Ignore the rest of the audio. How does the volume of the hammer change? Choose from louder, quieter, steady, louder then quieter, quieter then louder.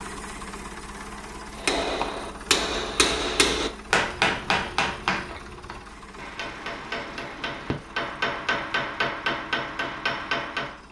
quieter then louder.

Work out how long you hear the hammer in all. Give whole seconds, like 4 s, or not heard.
9 s.